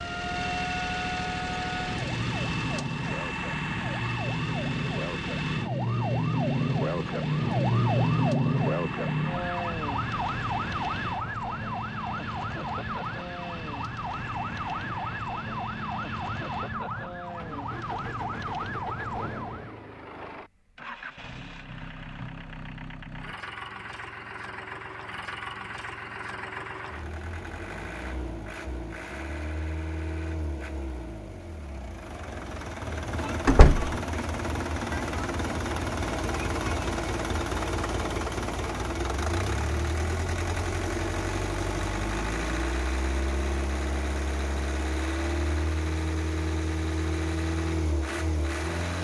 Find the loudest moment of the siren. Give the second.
8 s.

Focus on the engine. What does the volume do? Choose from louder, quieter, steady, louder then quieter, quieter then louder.
quieter then louder.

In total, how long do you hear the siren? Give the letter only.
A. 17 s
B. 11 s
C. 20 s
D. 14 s
C.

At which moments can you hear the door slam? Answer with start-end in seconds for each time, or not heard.
33.5-33.9.